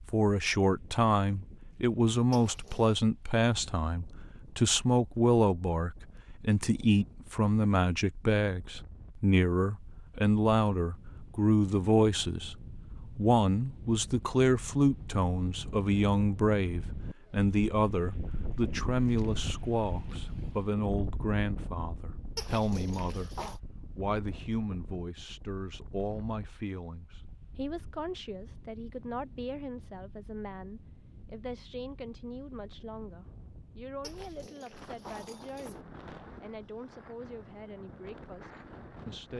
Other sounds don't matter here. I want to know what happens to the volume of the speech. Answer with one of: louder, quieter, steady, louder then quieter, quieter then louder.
quieter.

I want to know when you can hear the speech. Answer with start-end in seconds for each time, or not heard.
0.1-23.4, 23.9-39.3.